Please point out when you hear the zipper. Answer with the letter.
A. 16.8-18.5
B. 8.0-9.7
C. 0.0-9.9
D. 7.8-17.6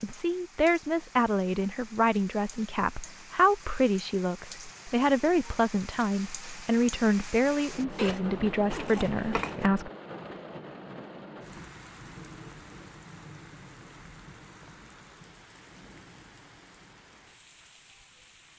B.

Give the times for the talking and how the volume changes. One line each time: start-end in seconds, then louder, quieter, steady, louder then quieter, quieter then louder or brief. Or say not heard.
0.0-9.9 steady.